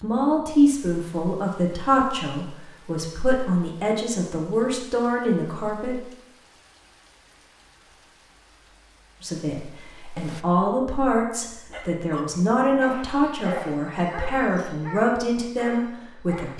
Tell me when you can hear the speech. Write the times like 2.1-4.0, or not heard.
0.0-6.1, 9.2-16.5.